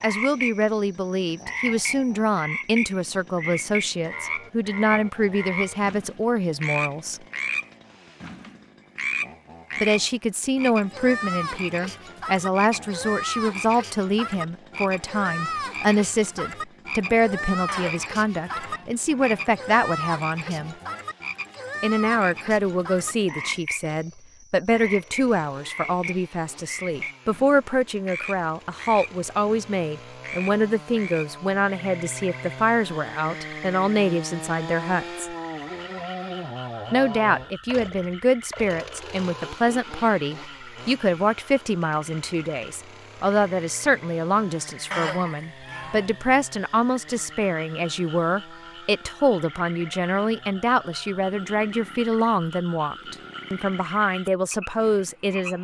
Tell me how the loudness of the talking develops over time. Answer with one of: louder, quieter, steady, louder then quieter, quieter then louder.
steady.